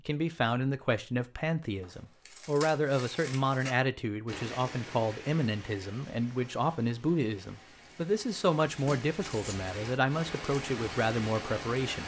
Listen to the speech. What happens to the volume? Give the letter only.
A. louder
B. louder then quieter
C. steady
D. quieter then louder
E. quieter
C.